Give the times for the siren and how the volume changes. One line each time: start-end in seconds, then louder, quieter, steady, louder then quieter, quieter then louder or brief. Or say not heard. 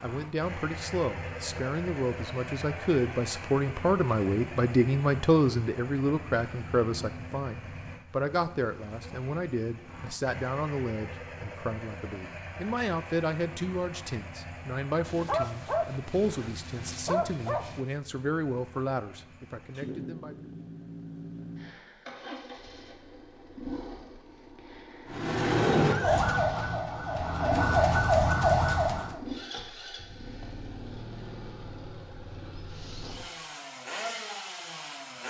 25.1-29.2 quieter then louder.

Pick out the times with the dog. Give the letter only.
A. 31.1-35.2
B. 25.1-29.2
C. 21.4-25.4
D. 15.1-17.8
D.